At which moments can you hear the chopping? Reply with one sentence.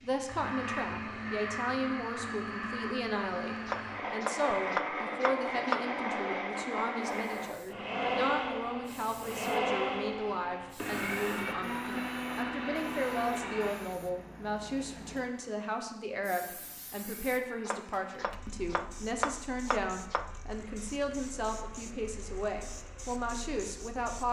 The chopping can be heard from 3.6 to 5.9 s and from 17.6 to 20.4 s.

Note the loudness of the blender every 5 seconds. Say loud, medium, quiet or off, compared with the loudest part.
loud, loud, loud, quiet, quiet.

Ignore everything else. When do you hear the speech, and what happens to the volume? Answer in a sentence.
You can hear the speech from 0.0 to 24.2 s, at a steady volume.